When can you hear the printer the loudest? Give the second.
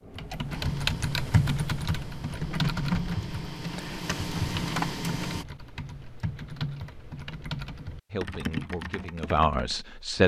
5 s.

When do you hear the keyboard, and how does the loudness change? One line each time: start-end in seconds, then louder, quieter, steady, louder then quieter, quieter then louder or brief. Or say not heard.
0.1-9.8 quieter.